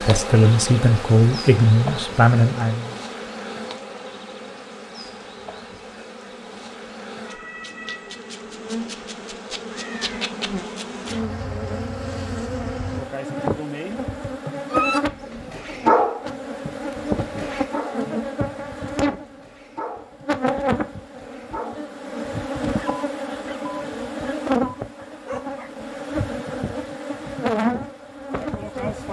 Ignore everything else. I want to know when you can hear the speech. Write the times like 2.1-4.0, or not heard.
0.0-3.0.